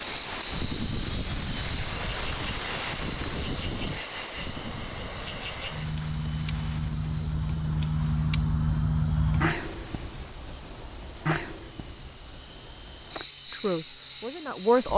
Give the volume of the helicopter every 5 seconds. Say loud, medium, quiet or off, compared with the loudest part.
loud, medium, medium.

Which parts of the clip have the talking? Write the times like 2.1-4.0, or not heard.
13.5-14.9.